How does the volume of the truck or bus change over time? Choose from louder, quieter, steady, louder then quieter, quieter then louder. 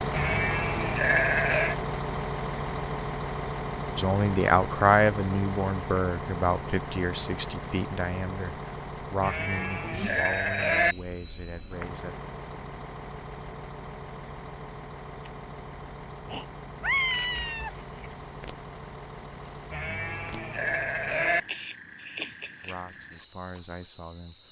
quieter.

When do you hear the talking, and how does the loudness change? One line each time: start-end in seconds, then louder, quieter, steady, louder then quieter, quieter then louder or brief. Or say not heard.
4.0-12.2 quieter
22.6-24.4 brief.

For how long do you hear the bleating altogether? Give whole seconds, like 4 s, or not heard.
5 s.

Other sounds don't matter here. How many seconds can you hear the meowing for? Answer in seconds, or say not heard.
2 s.